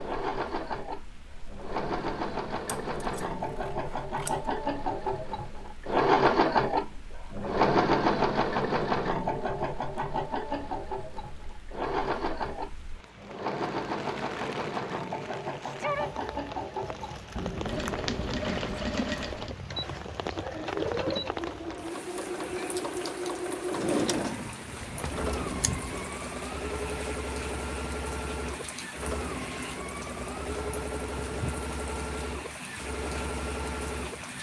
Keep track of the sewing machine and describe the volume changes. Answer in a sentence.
The loudness of the sewing machine goes down.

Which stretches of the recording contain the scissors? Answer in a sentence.
You can hear the scissors from 2.6 to 4.4 s, from 17.4 to 19.0 s and from 24.8 to 26.1 s.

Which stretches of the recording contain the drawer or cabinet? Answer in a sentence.
The drawer or cabinet can be heard from 23.7 to 24.9 s.